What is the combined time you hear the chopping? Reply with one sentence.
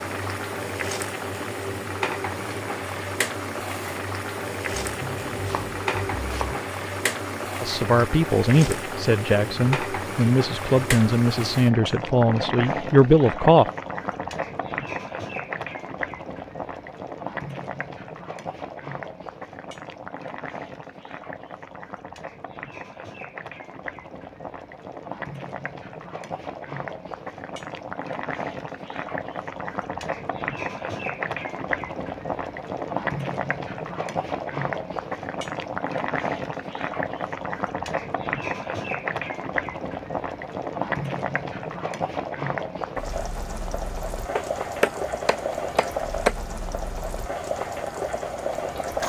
You can hear the chopping for 4 seconds altogether.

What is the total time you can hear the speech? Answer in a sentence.
You can hear the speech for 6 seconds altogether.